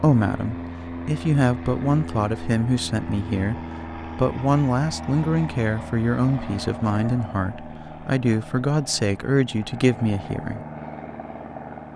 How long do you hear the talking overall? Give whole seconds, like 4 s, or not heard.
11 s.